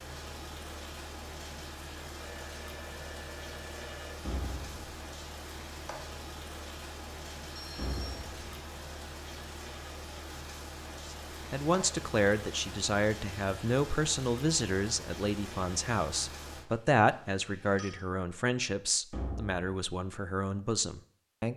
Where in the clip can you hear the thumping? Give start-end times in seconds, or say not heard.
4.2-5.0, 7.8-8.6, 19.1-19.6.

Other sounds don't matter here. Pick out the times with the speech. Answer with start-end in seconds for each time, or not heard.
11.1-21.5.